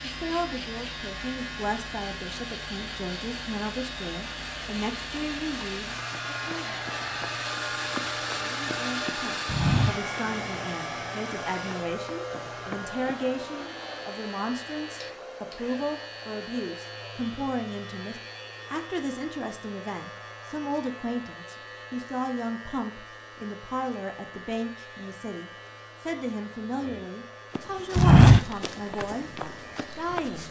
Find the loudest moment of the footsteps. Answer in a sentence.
The loudest moment of the footsteps is at 28 seconds.